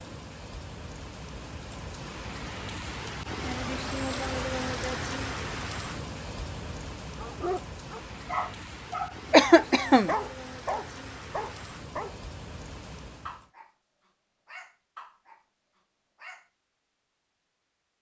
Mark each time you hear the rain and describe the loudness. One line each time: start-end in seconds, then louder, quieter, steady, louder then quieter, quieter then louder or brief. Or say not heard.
0.0-13.5 louder then quieter.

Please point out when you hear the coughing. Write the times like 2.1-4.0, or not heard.
9.3-10.2.